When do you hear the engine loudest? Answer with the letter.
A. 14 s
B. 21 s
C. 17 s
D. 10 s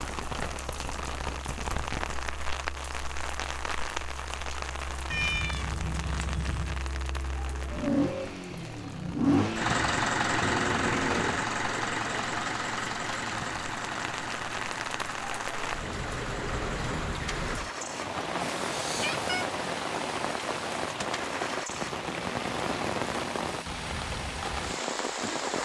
D.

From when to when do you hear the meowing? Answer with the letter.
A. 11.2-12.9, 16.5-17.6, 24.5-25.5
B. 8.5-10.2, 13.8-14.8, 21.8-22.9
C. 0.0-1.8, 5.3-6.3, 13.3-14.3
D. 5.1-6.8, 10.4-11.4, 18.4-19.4
D.